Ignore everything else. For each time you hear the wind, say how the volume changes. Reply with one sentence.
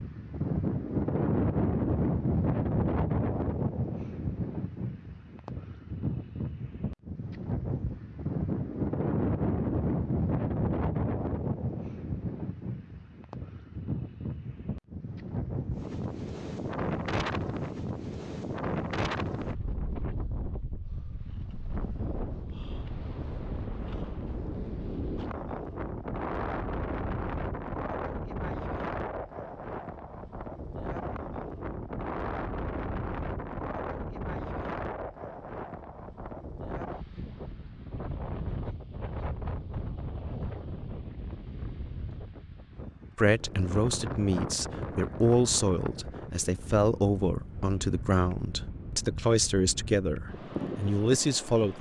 You can hear the wind from 0.0 to 51.7 s, getting quieter.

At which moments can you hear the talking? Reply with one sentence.
The talking can be heard from 43.1 to 51.7 s.